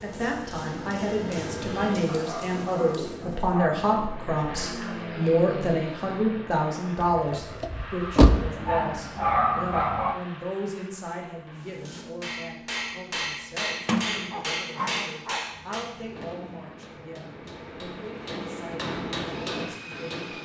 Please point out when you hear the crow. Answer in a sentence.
You can't hear the crow here.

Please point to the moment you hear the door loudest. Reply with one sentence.
The loudest moment of the door is at 8 seconds.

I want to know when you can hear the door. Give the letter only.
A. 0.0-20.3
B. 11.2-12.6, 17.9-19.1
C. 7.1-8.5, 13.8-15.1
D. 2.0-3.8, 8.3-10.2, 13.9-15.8
C.